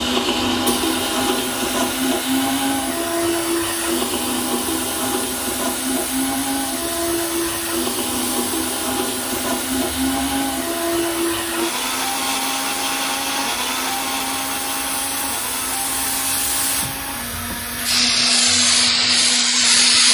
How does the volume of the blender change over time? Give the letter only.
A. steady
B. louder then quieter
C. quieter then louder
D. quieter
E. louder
D.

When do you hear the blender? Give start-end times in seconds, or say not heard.
0.0-20.0.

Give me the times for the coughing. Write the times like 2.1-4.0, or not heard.
not heard.